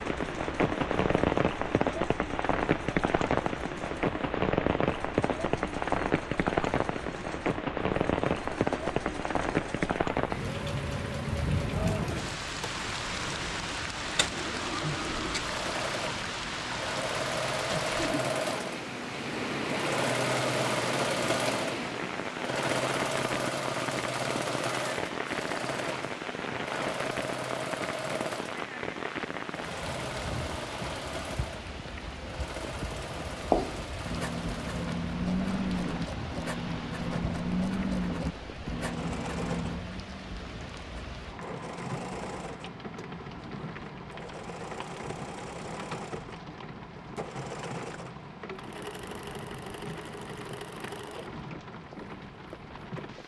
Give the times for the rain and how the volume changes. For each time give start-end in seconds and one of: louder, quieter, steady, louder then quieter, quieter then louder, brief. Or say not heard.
0.0-53.2 quieter.